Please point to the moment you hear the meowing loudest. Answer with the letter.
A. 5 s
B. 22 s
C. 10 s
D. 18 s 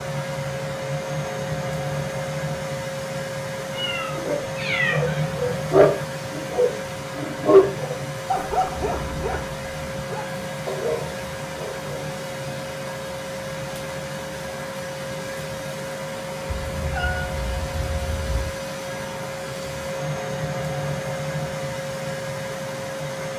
A.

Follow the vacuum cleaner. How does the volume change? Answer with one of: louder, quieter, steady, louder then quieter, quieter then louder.
steady.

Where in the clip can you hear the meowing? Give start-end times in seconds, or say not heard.
3.7-5.2, 8.8-9.4, 16.4-18.5.